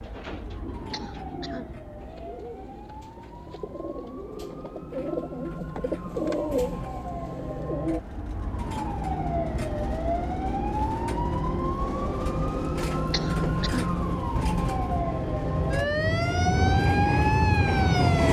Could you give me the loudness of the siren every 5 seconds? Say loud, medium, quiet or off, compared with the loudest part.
quiet, medium, loud, loud.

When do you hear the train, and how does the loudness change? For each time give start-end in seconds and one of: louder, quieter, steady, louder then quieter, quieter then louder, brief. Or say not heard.
11.8-18.2 louder.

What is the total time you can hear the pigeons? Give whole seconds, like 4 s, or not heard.
8 s.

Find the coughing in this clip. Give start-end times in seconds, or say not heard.
0.9-1.7, 13.1-13.9.